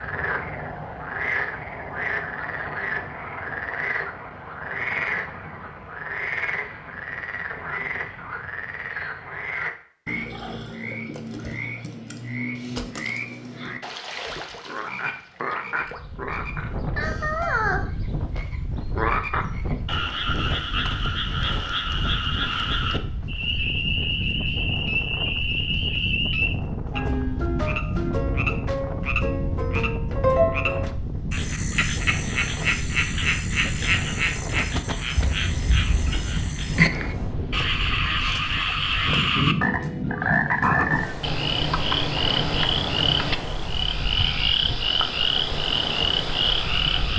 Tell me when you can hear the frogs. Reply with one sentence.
You can hear the frogs from 0.0 to 47.1 s.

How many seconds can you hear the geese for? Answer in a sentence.
You can't hear the geese here.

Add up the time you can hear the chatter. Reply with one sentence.
The chatter can't be heard in this clip.